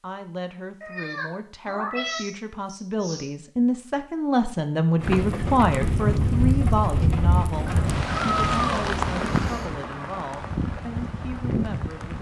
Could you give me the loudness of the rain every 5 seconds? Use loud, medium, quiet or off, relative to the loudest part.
off, loud, medium.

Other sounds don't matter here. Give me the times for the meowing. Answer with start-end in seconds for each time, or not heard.
0.8-3.2, 7.7-9.7.